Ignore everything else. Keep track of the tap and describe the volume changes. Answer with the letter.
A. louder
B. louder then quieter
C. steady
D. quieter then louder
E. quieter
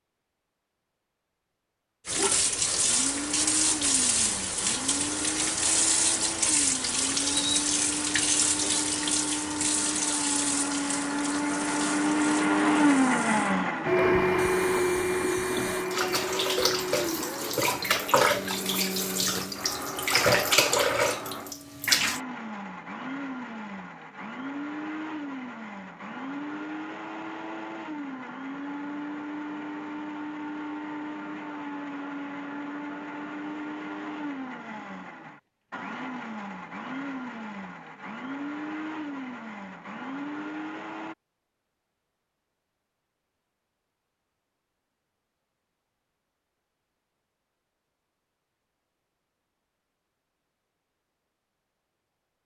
D.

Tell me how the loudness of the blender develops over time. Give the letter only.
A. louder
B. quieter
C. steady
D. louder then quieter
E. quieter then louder
D.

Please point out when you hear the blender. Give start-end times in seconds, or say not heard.
2.9-41.1.